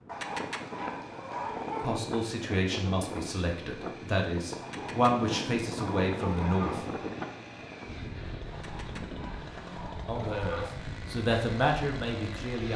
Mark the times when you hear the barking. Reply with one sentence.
The barking can be heard from 0.1 to 1.9 s, from 4.6 to 6.8 s and from 8.5 to 10.8 s.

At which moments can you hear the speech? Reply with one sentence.
The speech can be heard from 1.8 to 6.8 s and from 10.1 to 12.7 s.